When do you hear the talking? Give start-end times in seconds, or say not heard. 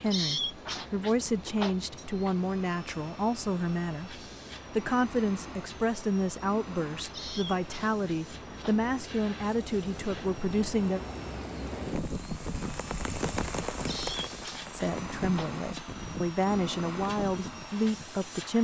0.0-11.0, 14.7-18.5.